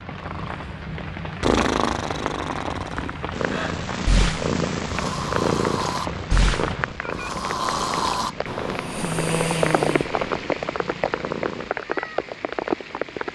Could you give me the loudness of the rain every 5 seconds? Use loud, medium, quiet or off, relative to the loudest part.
medium, loud, loud.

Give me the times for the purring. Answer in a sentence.
You can hear the purring from 3.3 to 11.7 s.